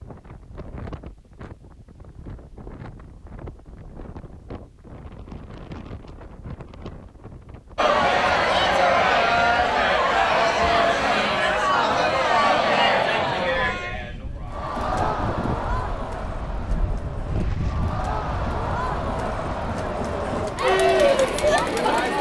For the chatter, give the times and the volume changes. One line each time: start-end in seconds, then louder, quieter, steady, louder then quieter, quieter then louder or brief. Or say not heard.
7.8-22.1 quieter then louder.